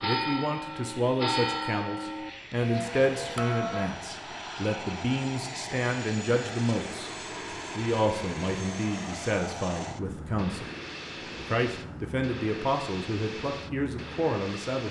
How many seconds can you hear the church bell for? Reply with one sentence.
The church bell can be heard for 4 seconds in total.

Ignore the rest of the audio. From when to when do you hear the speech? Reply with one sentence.
The speech can be heard from 0.0 to 7.1 s, from 7.8 to 10.7 s and from 11.3 to 14.8 s.